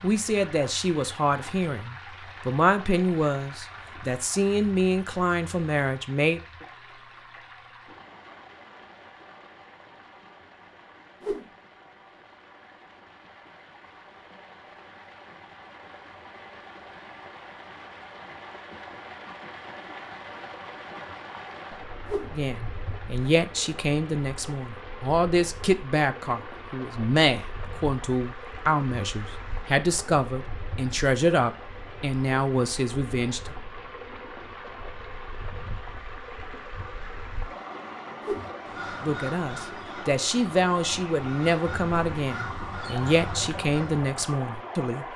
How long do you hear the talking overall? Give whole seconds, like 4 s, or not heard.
24 s.